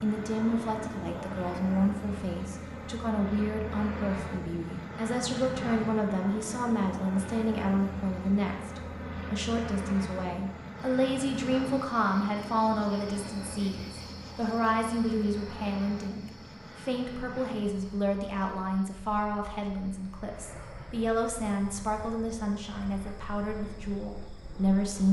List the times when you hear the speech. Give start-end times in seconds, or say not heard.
0.0-25.0.